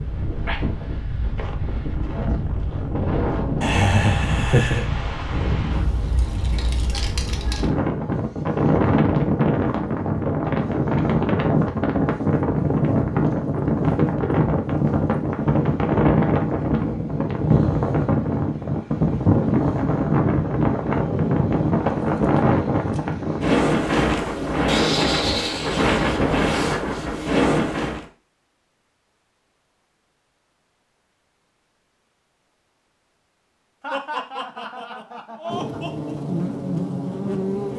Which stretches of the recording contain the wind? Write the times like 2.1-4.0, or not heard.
0.0-28.1.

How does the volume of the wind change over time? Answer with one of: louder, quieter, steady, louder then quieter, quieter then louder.
louder.